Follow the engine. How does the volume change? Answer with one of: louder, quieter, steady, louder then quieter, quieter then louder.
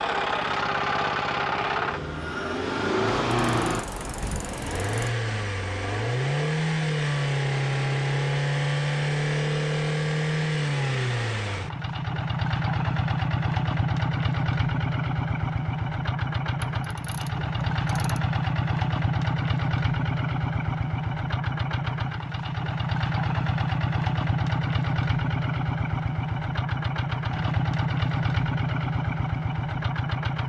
steady.